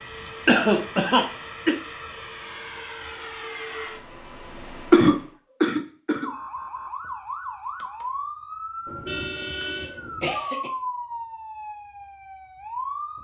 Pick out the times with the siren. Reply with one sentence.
You can hear the siren from 6.1 to 13.1 s.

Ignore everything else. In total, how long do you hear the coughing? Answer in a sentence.
The coughing can be heard for 4 seconds in total.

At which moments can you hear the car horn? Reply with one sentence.
The car horn can be heard from 8.8 to 10.4 s.